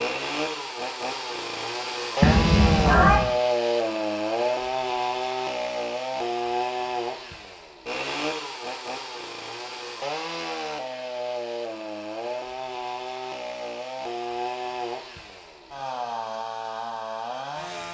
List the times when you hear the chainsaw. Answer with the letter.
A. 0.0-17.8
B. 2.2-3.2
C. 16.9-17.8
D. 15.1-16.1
A.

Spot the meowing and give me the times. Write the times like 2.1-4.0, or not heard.
2.2-3.2.